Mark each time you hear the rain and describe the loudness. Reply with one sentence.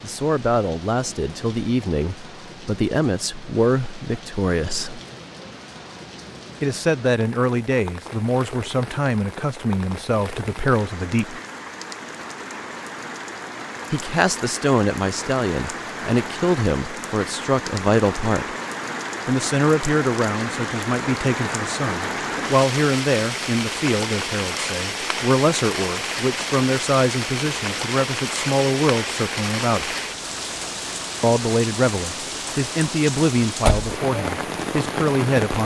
The rain can be heard from 0.0 to 35.6 s, getting louder.